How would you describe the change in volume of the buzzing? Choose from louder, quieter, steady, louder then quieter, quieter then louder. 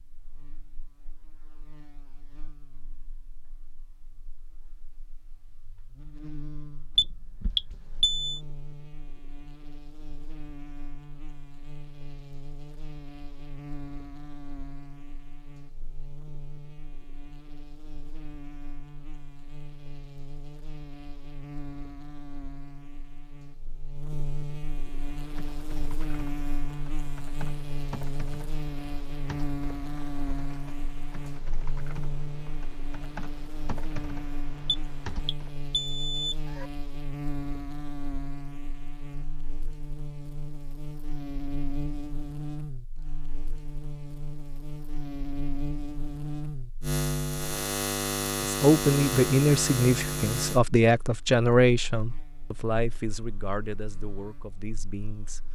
louder.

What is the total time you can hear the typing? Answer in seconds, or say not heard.
11 s.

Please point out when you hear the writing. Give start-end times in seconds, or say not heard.
not heard.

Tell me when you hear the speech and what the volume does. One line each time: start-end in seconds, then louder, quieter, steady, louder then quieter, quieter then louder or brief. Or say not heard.
48.4-55.5 quieter.